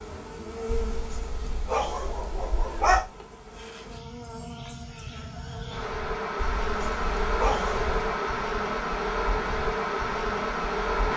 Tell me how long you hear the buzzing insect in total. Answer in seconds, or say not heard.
11 s.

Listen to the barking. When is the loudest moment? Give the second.
3 s.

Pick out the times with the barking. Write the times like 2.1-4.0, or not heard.
0.7-3.1, 6.6-8.0.